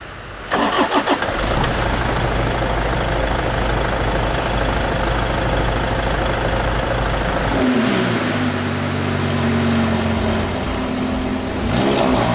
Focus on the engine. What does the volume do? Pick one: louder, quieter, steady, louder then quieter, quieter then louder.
steady.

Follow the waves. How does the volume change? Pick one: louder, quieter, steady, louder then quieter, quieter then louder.
steady.